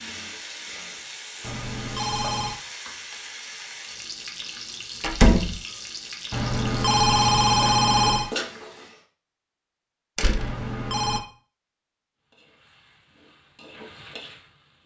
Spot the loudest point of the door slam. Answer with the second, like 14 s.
5 s.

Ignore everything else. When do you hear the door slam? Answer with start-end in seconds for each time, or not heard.
5.0-5.5, 10.2-10.6.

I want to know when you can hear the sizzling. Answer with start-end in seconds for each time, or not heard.
0.0-9.0, 12.2-14.8.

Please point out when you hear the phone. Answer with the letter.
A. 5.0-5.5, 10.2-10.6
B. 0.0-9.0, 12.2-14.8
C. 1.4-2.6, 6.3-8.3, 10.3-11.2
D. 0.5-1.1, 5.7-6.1
C.